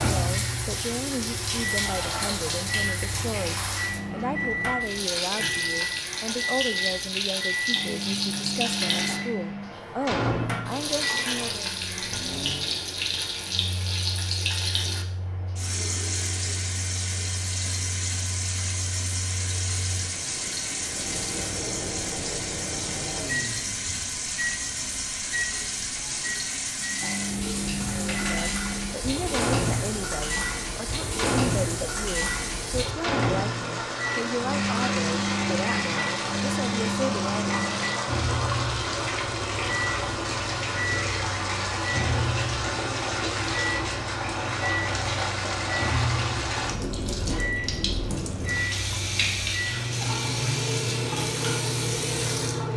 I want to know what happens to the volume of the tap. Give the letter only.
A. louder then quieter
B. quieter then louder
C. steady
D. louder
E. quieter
C.